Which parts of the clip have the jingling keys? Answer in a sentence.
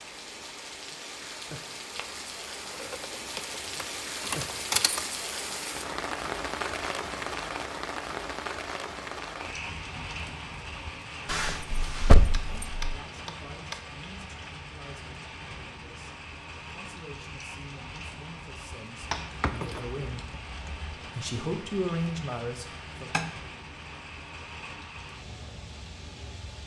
The jingling keys can be heard from 2.8 to 5.0 s, from 11.2 to 12.9 s and from 19.2 to 20.9 s.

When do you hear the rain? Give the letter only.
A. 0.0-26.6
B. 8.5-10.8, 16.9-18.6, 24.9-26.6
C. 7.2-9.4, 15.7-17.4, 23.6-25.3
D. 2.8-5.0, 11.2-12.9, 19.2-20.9
A.